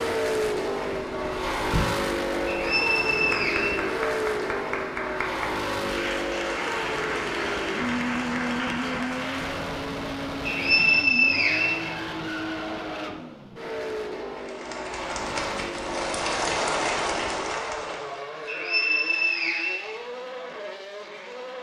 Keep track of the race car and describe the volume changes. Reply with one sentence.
The loudness of the race car goes down.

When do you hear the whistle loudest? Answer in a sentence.
The loudest moment of the whistle is at 11 seconds.